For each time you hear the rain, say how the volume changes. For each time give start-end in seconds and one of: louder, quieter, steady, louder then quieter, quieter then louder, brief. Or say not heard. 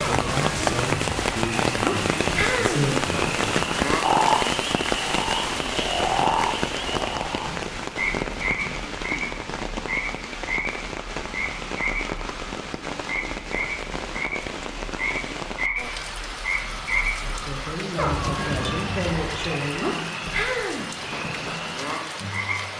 0.0-22.7 quieter.